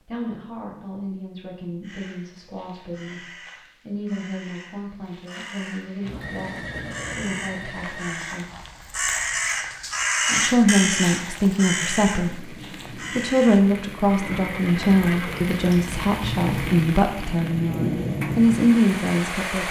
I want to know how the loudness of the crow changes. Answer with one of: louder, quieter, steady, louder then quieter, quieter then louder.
louder then quieter.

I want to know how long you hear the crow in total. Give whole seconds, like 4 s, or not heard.
12 s.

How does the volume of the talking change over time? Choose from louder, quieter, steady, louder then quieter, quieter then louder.
louder.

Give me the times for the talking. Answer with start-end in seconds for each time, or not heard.
0.0-8.5, 10.2-19.6.